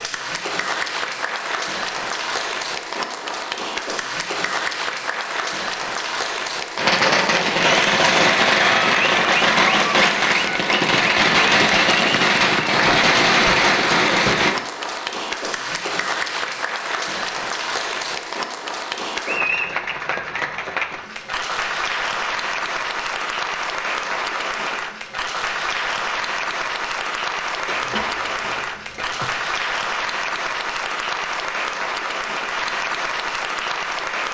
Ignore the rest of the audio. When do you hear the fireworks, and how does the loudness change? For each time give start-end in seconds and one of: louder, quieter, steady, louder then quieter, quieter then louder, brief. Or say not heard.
6.8-14.6 steady.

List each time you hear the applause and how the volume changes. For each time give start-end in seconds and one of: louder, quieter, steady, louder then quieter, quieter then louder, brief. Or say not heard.
0.0-34.2 steady.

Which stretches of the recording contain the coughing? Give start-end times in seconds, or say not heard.
27.6-29.2.